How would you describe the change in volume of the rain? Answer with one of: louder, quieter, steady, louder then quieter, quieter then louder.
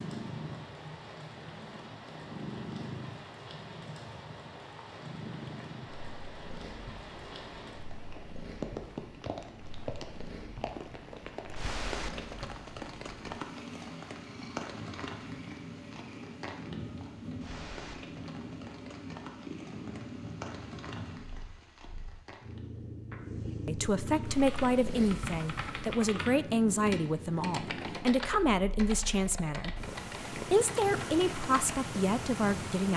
louder then quieter.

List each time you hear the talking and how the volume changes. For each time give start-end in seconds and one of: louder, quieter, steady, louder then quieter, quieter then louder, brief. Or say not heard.
23.6-32.9 steady.